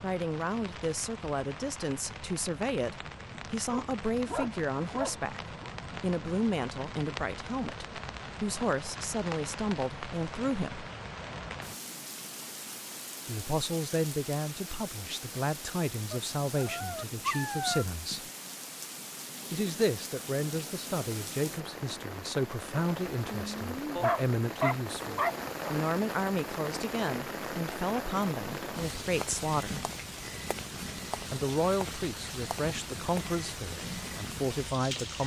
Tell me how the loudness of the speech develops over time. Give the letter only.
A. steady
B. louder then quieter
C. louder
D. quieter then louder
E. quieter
A.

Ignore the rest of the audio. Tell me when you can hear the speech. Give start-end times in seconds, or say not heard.
0.0-10.9, 13.2-18.3, 19.5-29.9, 31.3-35.2.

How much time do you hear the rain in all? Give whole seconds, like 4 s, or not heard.
35 s.